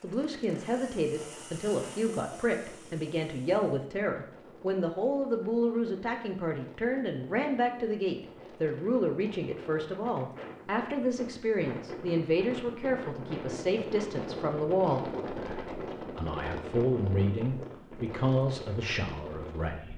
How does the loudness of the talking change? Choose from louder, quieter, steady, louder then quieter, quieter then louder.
steady.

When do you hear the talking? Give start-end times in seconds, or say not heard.
0.0-19.9.